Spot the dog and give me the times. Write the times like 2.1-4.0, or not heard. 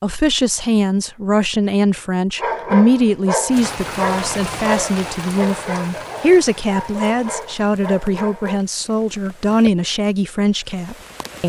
2.4-8.6.